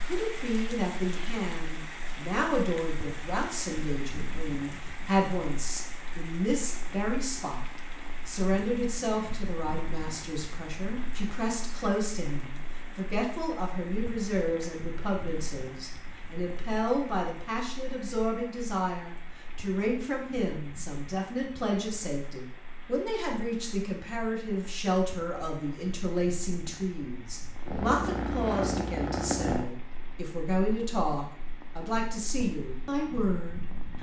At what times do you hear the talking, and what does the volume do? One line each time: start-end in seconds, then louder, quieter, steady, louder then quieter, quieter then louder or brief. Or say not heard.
0.1-33.9 steady.